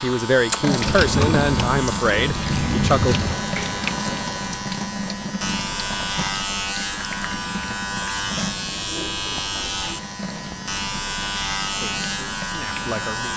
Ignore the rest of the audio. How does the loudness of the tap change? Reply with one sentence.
The volume of the tap goes down.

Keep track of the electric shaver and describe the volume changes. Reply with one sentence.
The loudness of the electric shaver stays about the same.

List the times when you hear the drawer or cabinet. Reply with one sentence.
The drawer or cabinet can be heard from 0.8 to 3.4 s.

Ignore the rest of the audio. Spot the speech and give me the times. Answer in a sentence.
The speech can be heard from 0.0 to 3.1 s and from 11.8 to 13.3 s.